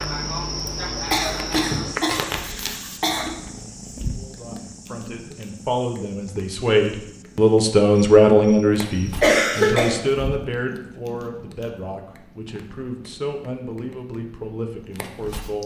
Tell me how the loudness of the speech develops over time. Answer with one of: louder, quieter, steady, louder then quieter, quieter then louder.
louder then quieter.